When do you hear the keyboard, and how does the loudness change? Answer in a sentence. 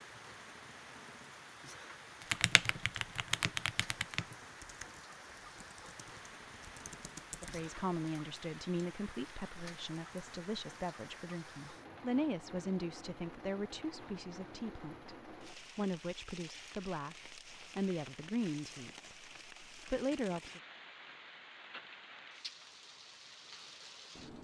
You can hear the keyboard from 2.3 to 7.5 s, getting quieter then louder.